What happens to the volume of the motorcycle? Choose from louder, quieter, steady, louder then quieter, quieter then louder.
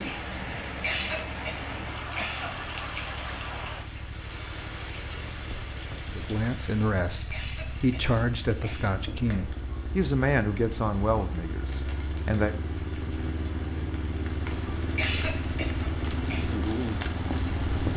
louder.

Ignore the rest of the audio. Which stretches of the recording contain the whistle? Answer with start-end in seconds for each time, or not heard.
not heard.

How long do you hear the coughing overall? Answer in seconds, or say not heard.
5 s.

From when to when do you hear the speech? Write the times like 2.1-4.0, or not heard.
6.2-12.6.